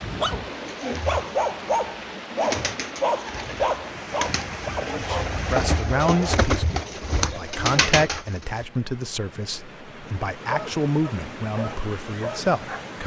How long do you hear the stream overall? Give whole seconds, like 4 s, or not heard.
13 s.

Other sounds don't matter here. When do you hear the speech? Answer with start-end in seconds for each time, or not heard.
4.9-13.0.